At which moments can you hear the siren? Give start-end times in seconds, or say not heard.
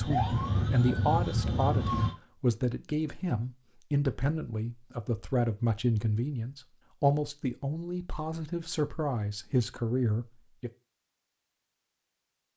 0.0-2.1.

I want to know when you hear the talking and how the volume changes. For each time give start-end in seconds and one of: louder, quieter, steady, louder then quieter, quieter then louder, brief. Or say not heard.
0.0-10.7 steady.